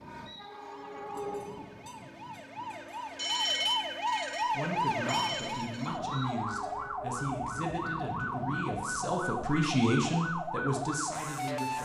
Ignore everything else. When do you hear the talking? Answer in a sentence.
You can hear the talking from 4.5 to 11.7 s.